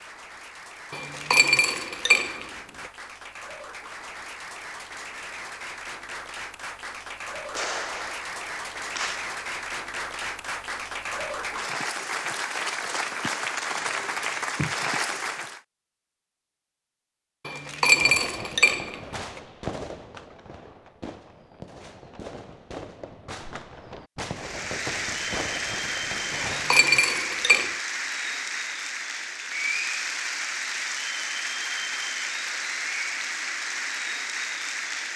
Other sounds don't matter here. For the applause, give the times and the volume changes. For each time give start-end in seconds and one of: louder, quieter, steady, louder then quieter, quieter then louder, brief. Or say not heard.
0.0-15.6 louder
24.3-35.1 steady.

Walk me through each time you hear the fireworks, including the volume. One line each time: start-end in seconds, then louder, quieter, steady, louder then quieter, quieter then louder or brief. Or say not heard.
7.5-9.3 brief
17.9-26.9 quieter then louder.